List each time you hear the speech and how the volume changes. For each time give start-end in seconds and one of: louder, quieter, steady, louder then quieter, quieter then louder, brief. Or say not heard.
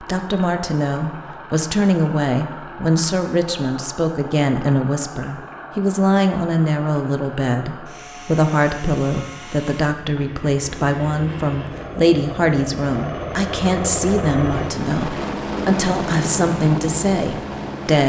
0.0-18.0 steady.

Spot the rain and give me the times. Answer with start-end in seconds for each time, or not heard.
not heard.